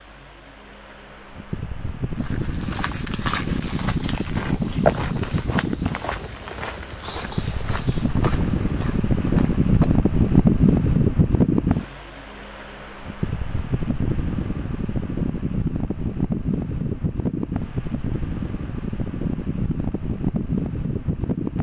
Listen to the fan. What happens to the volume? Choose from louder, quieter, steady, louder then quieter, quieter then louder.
louder then quieter.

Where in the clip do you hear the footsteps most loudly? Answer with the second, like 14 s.
5 s.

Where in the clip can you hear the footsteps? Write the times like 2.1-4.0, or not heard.
2.1-10.0.